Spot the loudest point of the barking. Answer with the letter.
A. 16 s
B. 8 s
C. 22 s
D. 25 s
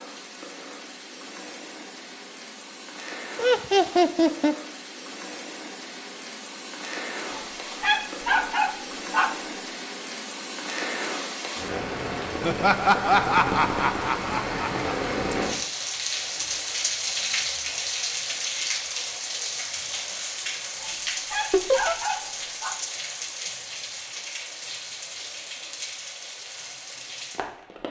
B.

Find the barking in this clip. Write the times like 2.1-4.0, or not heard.
7.3-9.3, 20.8-22.8.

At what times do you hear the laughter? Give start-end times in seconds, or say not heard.
3.4-4.5, 12.4-15.0, 21.5-21.9.